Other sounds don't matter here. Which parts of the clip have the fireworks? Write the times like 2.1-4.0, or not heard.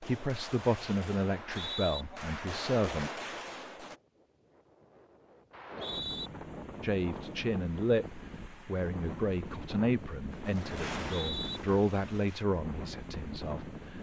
0.0-4.0, 10.3-12.4.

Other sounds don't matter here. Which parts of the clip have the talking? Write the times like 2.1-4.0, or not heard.
0.0-3.1, 6.8-13.9.